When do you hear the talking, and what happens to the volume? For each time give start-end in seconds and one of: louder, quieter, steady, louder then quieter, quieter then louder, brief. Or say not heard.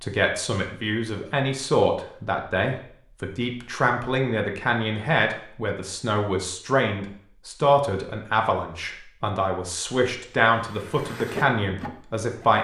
0.0-12.5 steady.